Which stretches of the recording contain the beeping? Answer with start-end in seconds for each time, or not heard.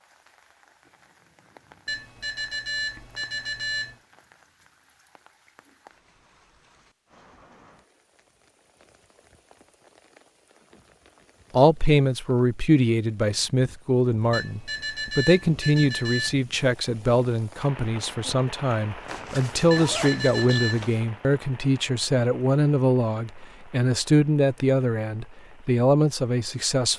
1.9-4.0, 14.3-16.4, 19.7-20.9.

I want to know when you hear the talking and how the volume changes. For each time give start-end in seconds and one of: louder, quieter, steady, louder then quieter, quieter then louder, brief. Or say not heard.
11.5-26.9 steady.